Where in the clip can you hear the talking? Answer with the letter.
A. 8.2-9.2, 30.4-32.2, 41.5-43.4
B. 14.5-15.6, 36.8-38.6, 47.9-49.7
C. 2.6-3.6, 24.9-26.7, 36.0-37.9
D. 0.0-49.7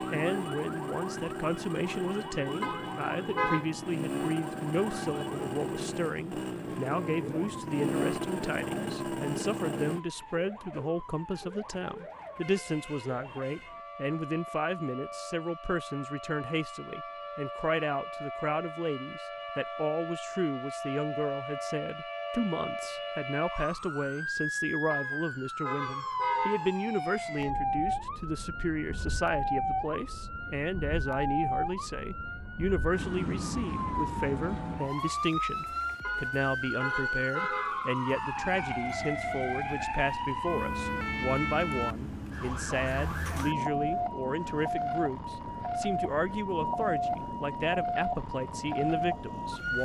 D.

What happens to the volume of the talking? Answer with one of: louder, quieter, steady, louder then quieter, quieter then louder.
steady.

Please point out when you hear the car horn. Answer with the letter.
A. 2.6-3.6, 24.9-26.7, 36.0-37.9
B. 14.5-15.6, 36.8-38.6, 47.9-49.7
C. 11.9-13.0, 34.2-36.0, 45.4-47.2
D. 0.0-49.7
A.